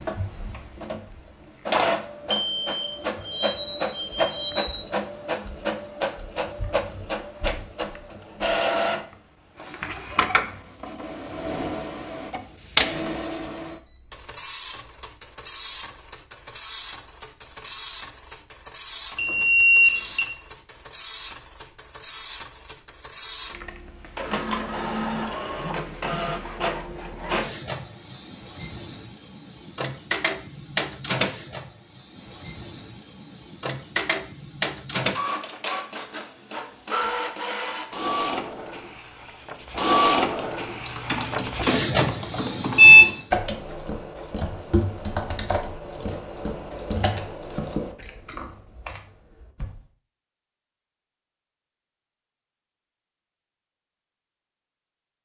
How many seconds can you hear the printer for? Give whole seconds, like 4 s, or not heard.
43 s.